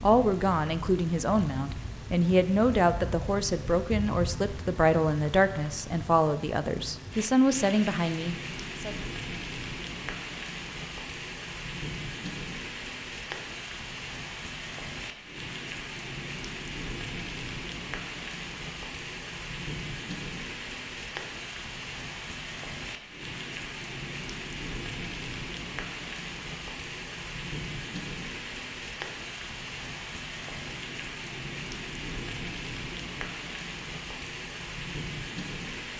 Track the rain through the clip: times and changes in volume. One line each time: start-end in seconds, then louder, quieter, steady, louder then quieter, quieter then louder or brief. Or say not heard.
0.0-35.9 steady.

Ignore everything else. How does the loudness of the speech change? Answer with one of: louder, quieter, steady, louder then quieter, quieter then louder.
steady.